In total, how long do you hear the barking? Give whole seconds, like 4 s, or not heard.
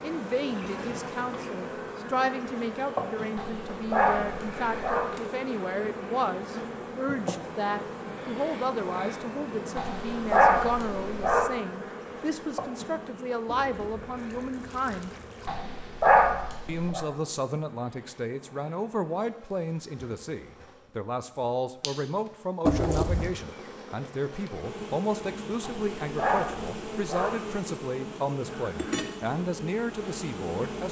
7 s.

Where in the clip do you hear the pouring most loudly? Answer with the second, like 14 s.
23 s.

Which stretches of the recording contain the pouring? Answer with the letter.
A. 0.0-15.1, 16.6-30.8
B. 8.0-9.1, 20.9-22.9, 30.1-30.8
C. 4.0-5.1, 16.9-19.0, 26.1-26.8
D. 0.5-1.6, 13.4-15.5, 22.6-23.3
D.